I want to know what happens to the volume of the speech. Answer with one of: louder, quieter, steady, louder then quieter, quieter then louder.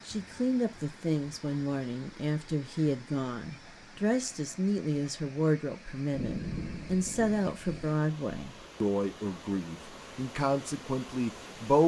steady.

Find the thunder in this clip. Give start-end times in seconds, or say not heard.
6.1-7.9.